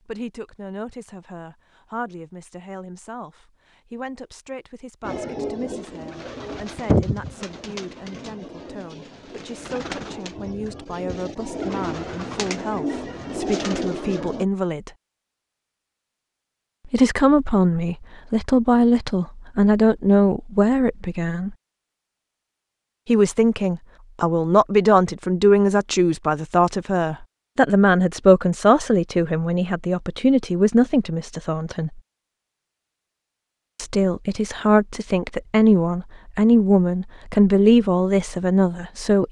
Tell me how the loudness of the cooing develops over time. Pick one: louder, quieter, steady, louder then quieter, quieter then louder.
quieter then louder.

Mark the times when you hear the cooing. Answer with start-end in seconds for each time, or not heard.
5.0-14.4.